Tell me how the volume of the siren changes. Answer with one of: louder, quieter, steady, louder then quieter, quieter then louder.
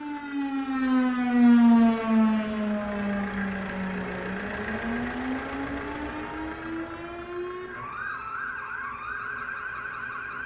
quieter.